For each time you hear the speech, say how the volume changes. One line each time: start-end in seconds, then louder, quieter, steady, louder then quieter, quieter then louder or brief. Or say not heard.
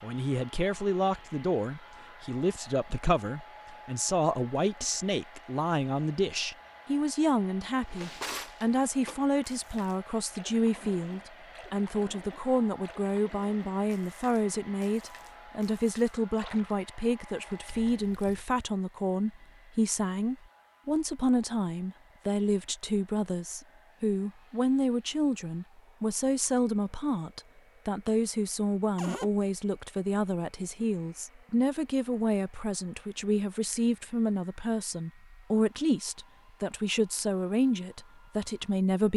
0.0-39.1 steady.